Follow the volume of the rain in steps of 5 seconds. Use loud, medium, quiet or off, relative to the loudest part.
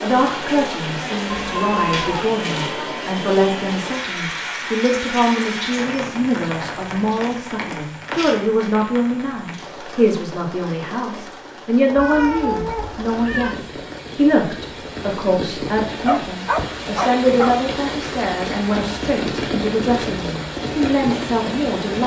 loud, loud, medium, loud, loud.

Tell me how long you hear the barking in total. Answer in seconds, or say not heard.
2 s.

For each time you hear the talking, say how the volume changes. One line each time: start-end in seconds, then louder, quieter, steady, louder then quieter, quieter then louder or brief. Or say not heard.
0.0-22.0 steady.